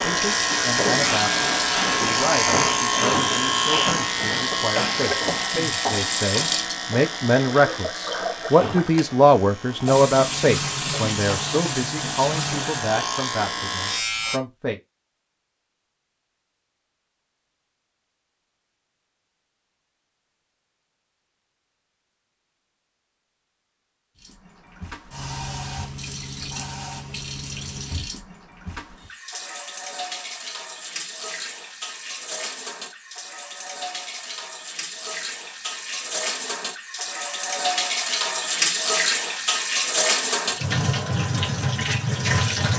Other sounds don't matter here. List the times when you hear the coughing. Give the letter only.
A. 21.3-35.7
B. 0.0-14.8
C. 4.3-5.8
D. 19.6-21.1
C.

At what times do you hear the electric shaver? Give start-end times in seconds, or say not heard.
0.0-14.4.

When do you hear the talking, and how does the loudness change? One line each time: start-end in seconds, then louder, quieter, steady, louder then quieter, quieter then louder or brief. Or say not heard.
0.0-14.8 louder then quieter.